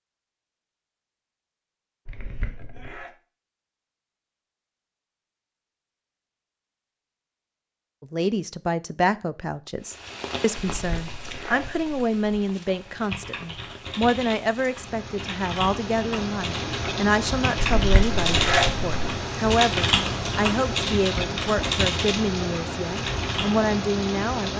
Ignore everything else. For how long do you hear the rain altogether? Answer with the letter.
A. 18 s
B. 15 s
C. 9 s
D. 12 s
B.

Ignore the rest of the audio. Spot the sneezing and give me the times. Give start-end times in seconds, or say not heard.
2.0-3.1, 10.7-12.1, 17.6-18.9.